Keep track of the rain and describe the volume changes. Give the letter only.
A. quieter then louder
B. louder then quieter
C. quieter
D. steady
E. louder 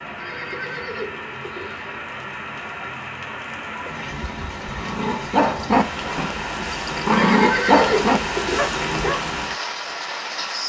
E.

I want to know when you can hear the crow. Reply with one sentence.
You can't hear the crow here.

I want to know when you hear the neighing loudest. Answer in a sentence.
The volume of the neighing peaks at 8 seconds.